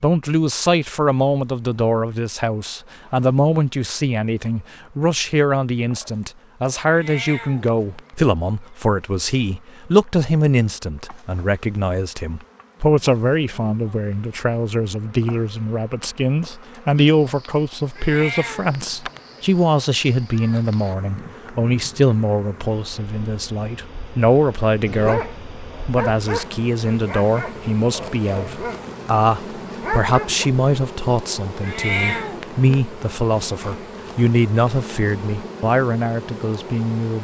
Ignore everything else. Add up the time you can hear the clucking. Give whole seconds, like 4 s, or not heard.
not heard.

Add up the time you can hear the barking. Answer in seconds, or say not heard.
6 s.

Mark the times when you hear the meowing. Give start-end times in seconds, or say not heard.
6.8-8.1, 17.9-19.4, 31.6-32.8.